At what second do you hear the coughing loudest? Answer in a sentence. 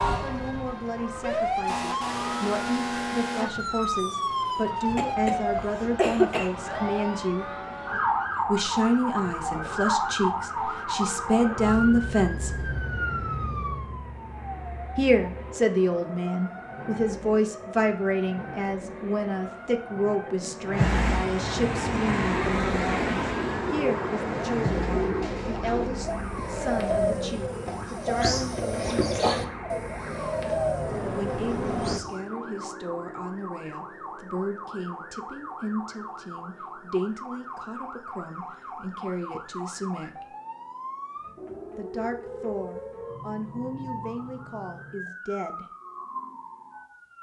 The loudest moment of the coughing is at 6 seconds.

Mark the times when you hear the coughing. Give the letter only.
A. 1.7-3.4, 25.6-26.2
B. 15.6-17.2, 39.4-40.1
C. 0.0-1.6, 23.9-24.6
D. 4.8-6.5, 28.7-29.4
D.